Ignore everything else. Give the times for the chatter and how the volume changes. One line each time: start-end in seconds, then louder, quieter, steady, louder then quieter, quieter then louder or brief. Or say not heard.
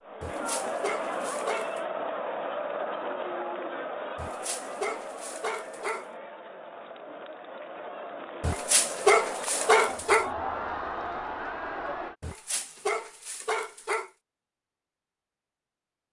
0.0-12.2 quieter then louder.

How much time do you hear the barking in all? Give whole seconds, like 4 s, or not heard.
7 s.